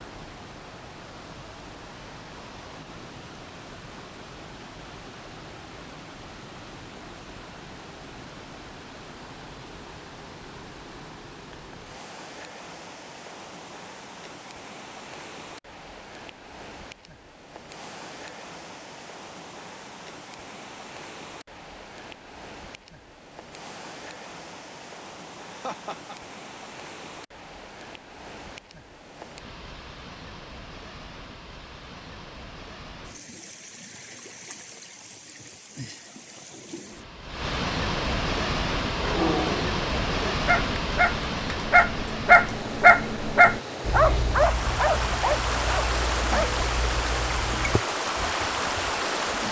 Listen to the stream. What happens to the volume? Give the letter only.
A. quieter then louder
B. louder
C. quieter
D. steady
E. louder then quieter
B.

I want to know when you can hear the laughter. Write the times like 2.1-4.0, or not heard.
25.4-26.1.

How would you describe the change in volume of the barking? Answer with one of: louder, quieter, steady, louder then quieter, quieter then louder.
louder then quieter.